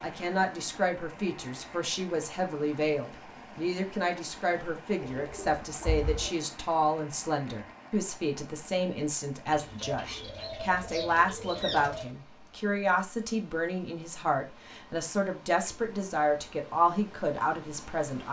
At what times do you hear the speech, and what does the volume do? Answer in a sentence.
The speech can be heard from 0.0 to 18.2 s, at a steady volume.